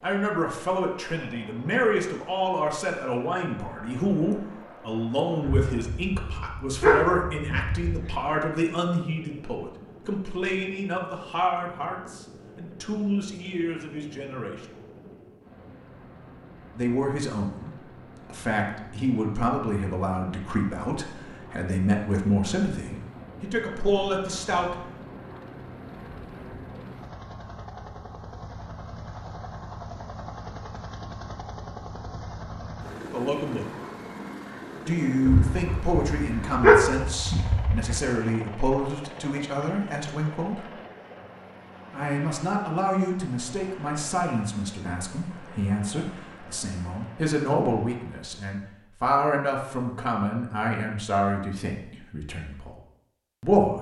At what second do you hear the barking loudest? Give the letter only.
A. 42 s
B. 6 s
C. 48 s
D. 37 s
D.